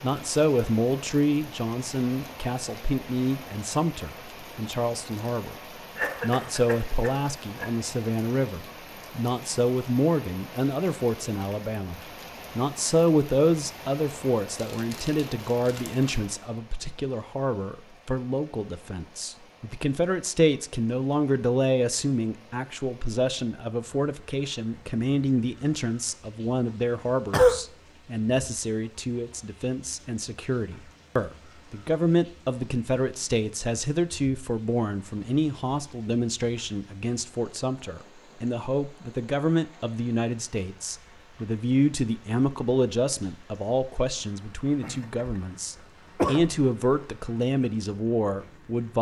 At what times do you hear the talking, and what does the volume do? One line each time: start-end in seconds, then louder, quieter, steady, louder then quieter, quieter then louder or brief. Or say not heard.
0.0-48.9 steady.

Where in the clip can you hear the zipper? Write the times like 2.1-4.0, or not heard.
not heard.